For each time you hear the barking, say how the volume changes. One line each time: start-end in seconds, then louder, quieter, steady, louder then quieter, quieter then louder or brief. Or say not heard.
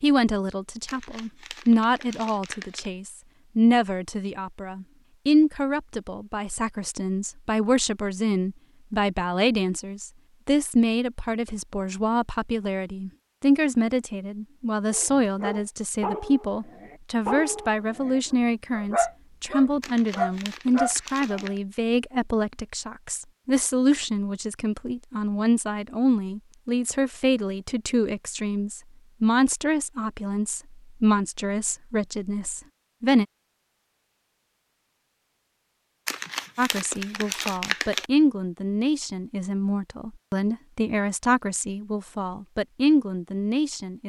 14.9-21.4 quieter then louder.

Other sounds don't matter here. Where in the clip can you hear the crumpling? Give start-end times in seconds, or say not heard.
0.8-2.9, 19.8-21.6, 36.0-38.0.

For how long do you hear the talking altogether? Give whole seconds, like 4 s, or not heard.
41 s.